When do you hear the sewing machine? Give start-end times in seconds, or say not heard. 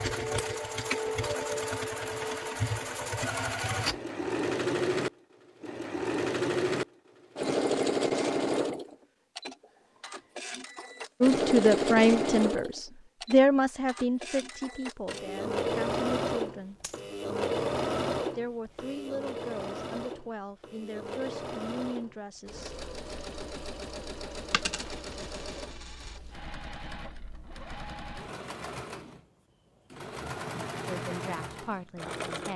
0.0-32.5.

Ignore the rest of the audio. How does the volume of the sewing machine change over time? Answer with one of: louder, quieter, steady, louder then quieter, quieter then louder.
quieter.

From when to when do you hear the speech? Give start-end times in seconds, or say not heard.
11.2-16.8, 18.4-22.8, 30.9-32.5.